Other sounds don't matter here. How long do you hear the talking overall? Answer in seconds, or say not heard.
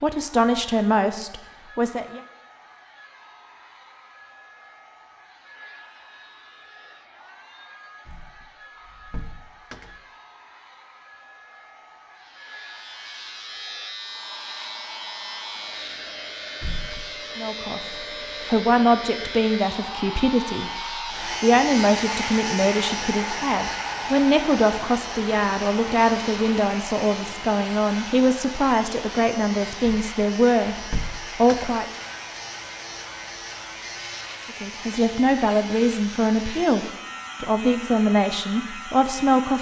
21 s.